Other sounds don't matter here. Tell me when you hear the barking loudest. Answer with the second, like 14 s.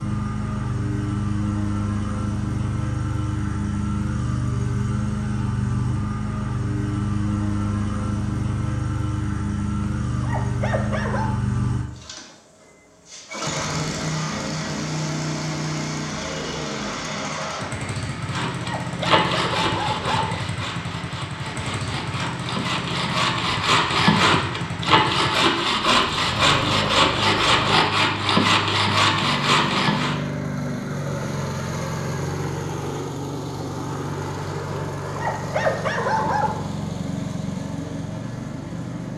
36 s.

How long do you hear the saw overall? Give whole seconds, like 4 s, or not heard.
12 s.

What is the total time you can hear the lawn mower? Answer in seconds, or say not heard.
39 s.